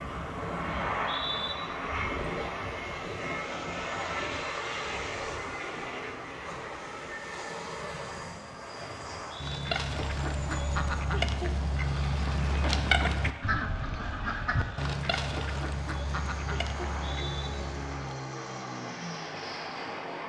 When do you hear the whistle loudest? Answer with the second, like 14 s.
1 s.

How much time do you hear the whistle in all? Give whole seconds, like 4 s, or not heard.
2 s.